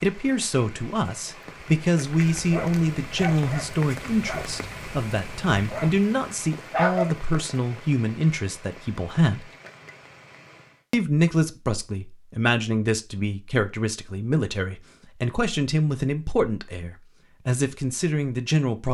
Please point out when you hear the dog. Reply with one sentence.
You can hear the dog from 2.0 to 6.0 s and from 6.7 to 7.2 s.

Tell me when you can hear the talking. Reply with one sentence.
You can hear the talking from 0.0 to 9.5 s and from 10.9 to 18.9 s.